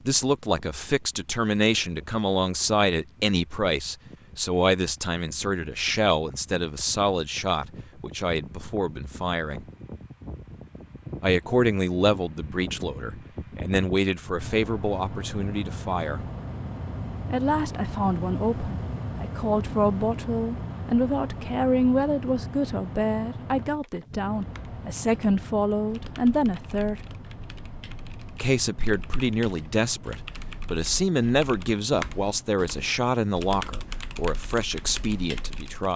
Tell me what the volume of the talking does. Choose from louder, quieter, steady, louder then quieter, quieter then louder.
steady.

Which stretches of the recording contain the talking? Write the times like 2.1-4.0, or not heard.
0.1-9.7, 11.2-16.2, 17.3-27.0, 28.4-35.9.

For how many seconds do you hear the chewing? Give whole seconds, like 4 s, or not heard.
not heard.